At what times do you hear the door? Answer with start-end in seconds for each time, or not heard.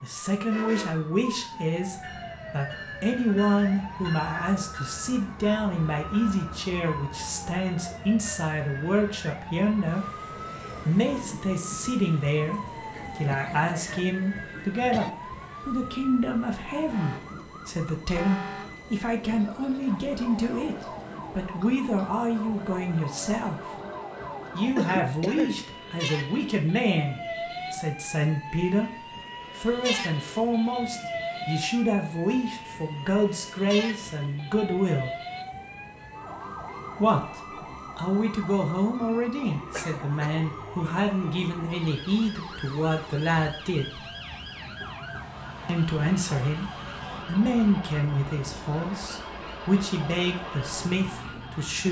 not heard.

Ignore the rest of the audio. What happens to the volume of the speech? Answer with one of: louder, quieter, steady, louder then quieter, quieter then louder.
steady.